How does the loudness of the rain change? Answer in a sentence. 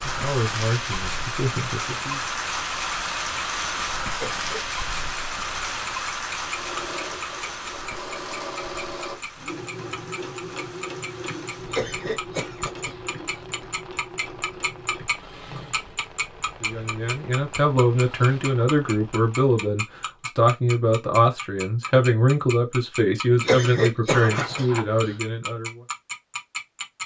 The loudness of the rain goes down.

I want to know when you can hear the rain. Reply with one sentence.
You can hear the rain from 0.0 to 19.6 s.